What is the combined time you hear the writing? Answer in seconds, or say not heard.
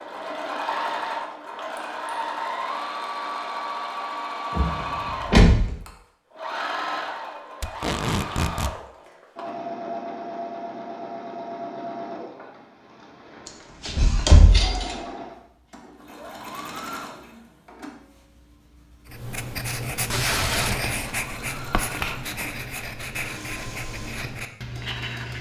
6 s.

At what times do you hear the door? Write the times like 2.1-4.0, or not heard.
4.5-5.8, 13.8-14.9.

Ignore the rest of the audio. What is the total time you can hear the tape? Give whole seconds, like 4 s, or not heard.
2 s.